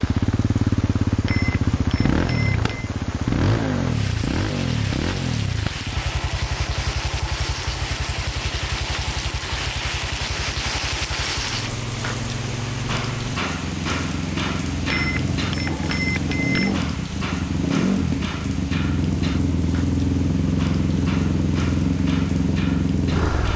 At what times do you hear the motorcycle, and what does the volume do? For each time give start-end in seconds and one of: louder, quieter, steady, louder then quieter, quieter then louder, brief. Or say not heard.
0.0-23.5 quieter then louder.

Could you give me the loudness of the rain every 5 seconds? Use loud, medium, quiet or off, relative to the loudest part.
medium, loud, loud, medium, medium.